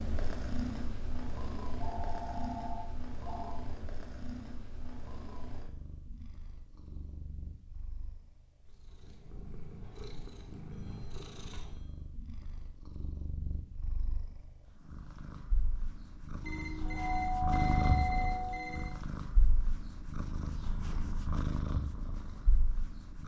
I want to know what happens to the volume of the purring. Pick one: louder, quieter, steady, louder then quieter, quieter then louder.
quieter then louder.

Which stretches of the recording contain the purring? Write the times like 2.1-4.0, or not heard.
0.0-23.2.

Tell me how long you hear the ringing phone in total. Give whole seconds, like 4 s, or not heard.
6 s.